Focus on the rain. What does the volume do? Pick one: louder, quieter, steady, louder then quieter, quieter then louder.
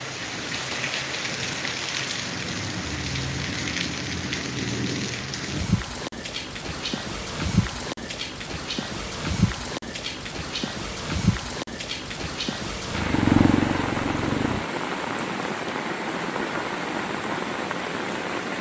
steady.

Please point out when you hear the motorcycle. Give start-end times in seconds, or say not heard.
12.8-14.7.